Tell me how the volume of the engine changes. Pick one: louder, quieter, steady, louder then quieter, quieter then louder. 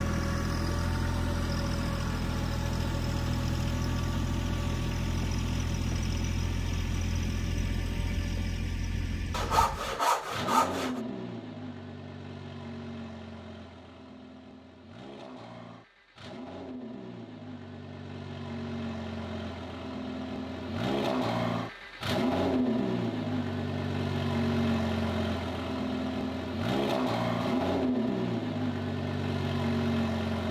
quieter then louder.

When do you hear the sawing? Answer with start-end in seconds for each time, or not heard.
9.3-11.0.